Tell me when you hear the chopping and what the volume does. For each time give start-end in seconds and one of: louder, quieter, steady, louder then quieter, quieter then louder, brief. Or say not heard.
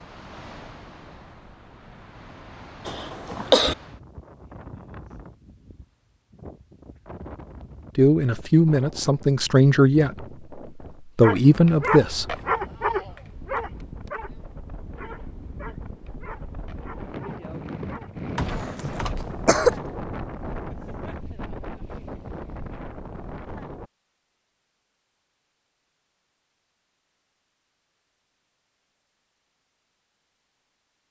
not heard.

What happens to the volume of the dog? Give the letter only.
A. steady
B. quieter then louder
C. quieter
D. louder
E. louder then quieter
C.